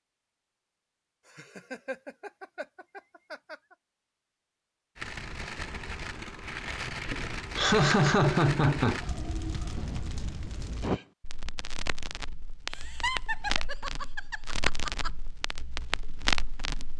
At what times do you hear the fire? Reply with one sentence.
The fire can be heard from 5.0 to 16.9 s.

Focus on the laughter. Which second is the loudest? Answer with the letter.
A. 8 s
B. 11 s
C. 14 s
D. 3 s
A.